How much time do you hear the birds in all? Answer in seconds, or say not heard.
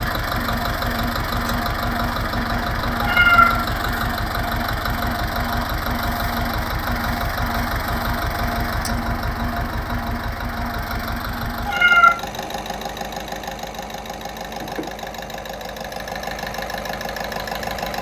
not heard.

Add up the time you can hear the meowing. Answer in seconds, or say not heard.
2 s.